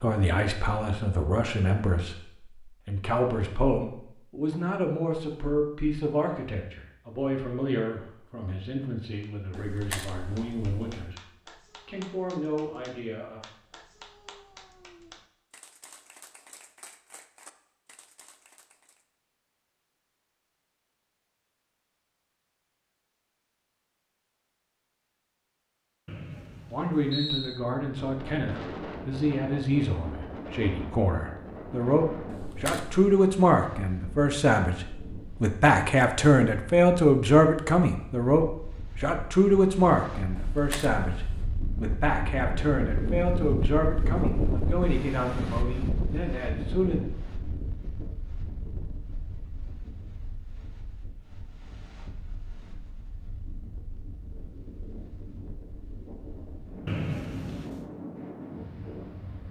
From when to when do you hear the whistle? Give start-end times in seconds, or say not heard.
26.1-27.6, 56.9-57.9.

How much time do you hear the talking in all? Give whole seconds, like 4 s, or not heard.
33 s.